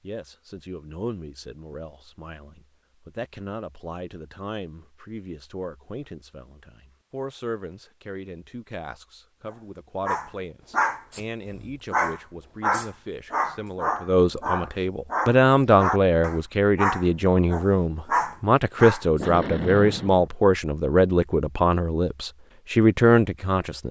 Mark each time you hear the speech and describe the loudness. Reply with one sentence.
The speech can be heard from 0.0 to 23.8 s, getting louder.